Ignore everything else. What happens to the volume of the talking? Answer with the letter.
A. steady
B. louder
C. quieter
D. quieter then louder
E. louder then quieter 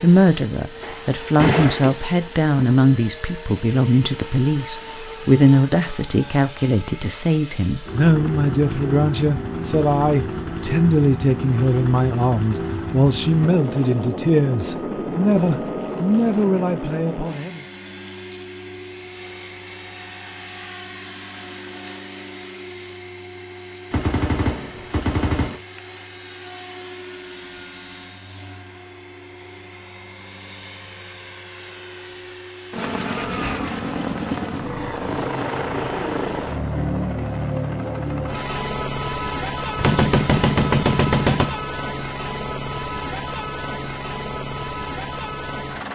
A.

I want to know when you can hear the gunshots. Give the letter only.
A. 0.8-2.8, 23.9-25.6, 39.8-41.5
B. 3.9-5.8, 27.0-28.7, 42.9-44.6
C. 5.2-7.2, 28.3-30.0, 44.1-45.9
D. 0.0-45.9
A.